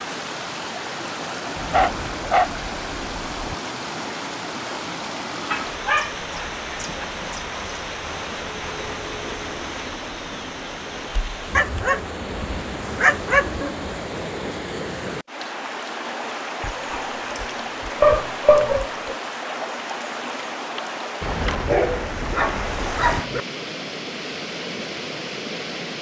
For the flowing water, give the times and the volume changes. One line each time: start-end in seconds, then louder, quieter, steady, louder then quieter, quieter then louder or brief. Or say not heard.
0.0-25.9 steady.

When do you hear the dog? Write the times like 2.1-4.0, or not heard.
1.6-2.5, 5.5-7.0, 11.6-13.9, 16.6-19.1, 21.4-23.4.